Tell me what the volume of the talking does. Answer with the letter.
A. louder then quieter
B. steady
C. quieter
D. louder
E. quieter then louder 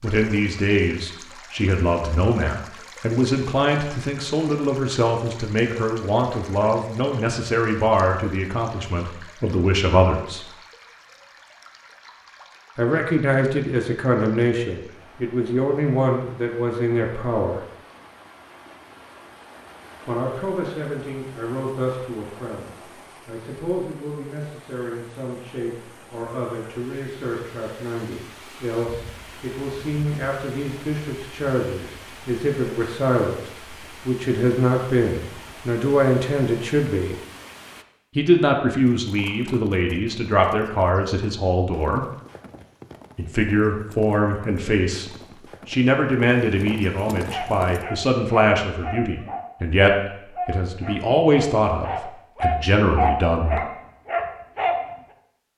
E.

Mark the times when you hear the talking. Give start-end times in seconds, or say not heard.
0.0-10.5, 12.8-17.6, 20.1-37.1, 38.1-42.0, 43.1-53.6.